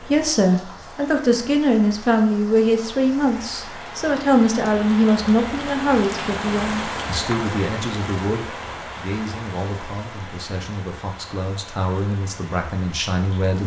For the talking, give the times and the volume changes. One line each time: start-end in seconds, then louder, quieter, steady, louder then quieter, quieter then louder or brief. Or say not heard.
0.0-13.6 quieter.